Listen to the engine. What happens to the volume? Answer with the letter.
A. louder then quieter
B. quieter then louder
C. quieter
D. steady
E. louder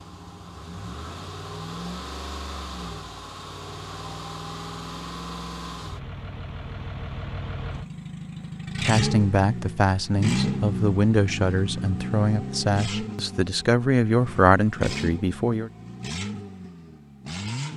A.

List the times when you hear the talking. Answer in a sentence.
You can hear the talking from 8.8 to 15.7 s.